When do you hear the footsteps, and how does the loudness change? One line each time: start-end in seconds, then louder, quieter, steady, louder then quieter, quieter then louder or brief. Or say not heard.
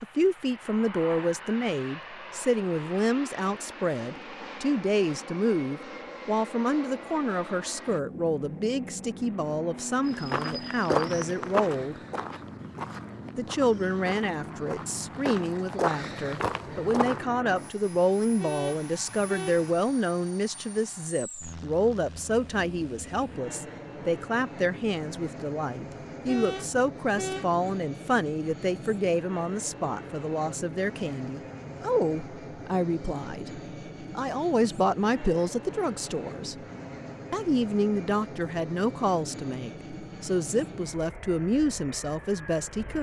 10.1-17.2 quieter then louder.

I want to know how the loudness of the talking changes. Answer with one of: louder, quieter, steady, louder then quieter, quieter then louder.
steady.